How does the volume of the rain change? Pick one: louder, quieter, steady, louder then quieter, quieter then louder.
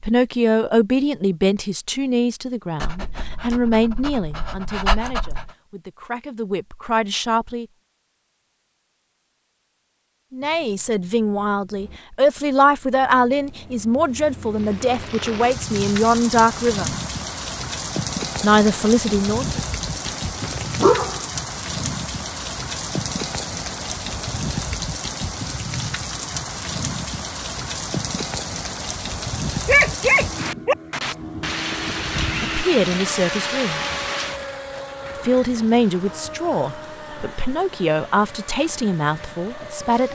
quieter.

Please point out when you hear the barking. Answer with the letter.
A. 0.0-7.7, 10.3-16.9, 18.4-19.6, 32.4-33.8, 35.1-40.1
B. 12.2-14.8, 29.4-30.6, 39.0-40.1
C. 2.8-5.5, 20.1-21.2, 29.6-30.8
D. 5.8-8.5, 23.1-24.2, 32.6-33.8
C.